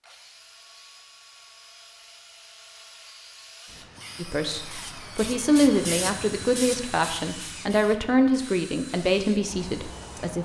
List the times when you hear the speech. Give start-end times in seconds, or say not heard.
4.2-10.3.